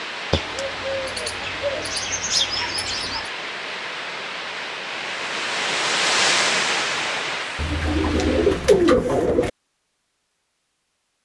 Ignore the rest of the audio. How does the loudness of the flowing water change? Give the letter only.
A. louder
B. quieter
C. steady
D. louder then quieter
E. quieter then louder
D.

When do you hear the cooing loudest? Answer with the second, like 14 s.
9 s.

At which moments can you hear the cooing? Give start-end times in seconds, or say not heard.
0.3-3.3, 7.5-9.5.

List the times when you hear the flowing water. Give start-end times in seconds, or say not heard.
0.0-8.8.